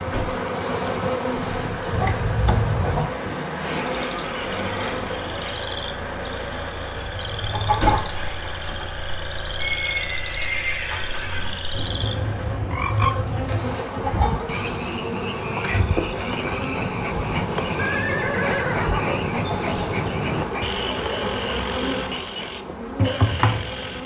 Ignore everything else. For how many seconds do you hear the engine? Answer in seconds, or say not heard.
13 s.